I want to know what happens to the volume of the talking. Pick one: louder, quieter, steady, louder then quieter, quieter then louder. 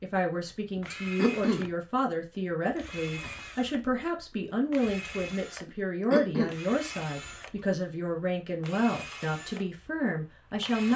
steady.